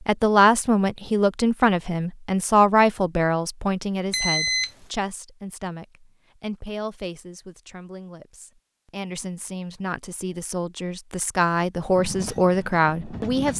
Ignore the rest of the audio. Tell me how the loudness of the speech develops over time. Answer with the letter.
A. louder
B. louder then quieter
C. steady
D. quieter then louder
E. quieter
D.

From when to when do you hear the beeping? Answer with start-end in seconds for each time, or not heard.
4.1-4.7.